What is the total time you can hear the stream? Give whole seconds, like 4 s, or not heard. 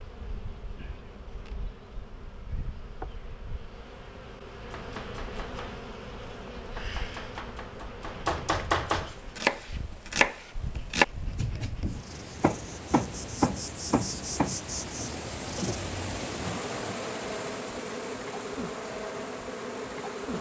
11 s.